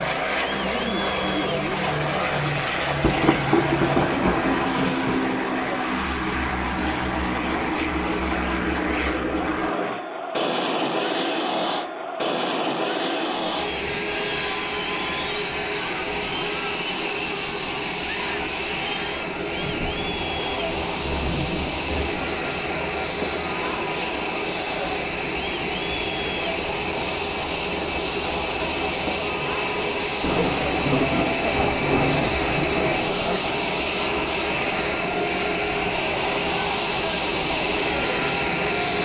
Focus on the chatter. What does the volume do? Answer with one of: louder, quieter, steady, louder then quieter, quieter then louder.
steady.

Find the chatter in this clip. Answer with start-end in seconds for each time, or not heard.
0.1-39.0.